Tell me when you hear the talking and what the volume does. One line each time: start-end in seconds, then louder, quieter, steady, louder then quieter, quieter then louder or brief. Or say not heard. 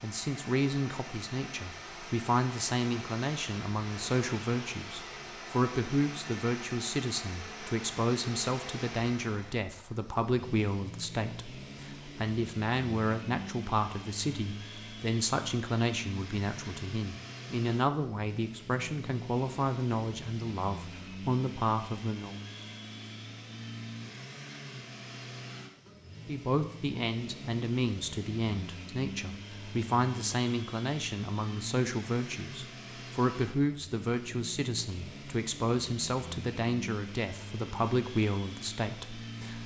0.0-22.4 steady
26.2-39.6 steady.